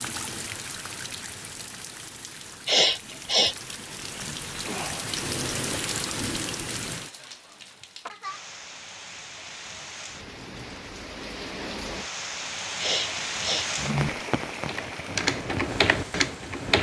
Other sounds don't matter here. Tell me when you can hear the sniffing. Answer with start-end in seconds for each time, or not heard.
2.6-3.5, 12.8-13.7.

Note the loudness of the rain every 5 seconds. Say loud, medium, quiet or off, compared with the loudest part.
medium, loud, loud, medium.